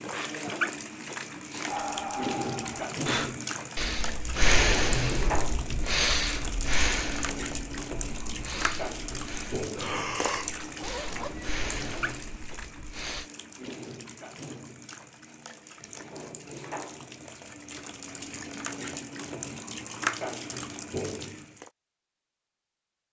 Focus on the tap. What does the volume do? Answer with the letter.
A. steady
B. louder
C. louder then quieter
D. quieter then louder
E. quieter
D.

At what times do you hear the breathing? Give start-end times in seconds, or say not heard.
1.6-13.3.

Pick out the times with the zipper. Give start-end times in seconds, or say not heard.
10.4-11.6.